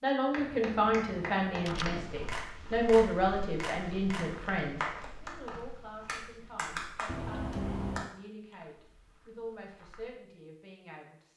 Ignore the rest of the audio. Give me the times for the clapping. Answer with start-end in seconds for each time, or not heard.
0.3-8.1.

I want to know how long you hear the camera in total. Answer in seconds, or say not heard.
3 s.